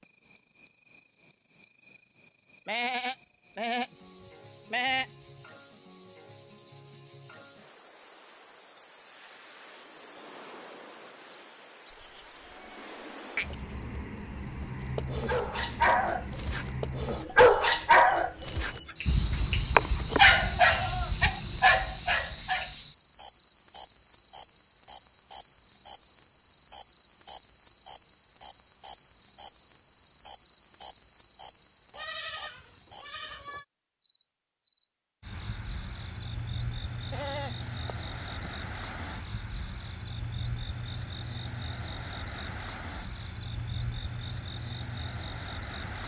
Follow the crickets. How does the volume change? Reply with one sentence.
The volume of the crickets stays about the same.